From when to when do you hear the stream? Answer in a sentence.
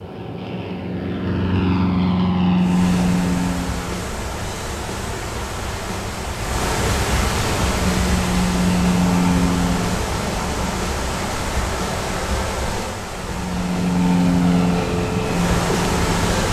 The stream can be heard from 2.5 to 16.4 s.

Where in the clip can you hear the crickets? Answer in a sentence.
The crickets can't be heard in this clip.